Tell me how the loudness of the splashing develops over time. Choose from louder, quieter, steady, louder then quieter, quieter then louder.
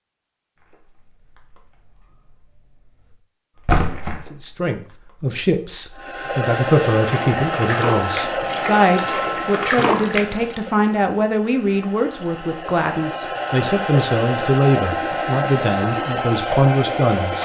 quieter then louder.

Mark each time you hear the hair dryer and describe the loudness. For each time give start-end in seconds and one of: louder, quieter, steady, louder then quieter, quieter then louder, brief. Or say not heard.
6.0-17.4 quieter then louder.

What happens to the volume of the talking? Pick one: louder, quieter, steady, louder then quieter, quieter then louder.
steady.